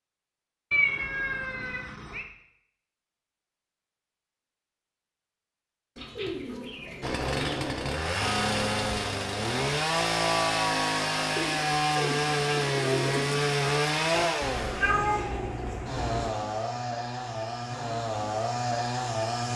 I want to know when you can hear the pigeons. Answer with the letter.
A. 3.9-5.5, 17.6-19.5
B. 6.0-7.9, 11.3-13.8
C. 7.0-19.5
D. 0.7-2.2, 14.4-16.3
B.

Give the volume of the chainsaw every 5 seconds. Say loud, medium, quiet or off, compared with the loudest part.
off, loud, loud, medium.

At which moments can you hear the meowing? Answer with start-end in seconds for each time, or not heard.
0.7-2.2, 14.4-16.3.